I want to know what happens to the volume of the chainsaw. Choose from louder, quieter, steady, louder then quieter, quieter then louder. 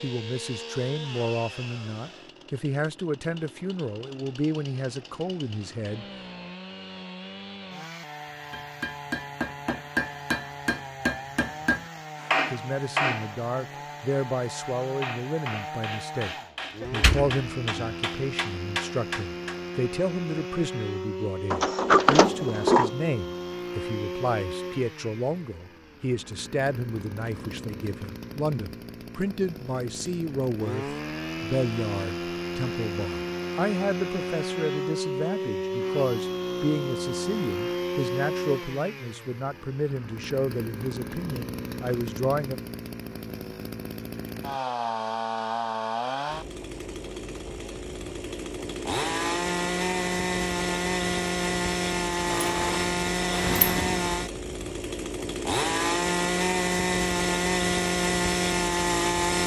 louder.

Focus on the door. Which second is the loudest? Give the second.
22 s.